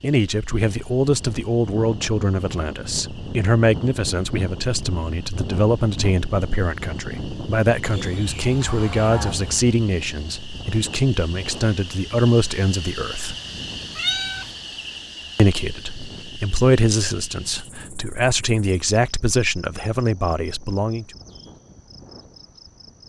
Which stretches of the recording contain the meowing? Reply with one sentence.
The meowing can be heard from 13.9 to 14.5 s.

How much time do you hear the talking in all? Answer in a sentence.
The talking can be heard for 19 seconds in total.